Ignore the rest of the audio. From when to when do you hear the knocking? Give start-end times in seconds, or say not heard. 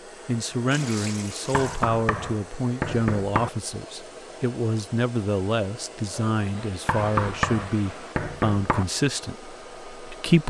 1.5-3.5, 6.8-8.8.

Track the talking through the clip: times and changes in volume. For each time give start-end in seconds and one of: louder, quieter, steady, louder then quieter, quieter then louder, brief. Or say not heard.
0.2-10.4 steady.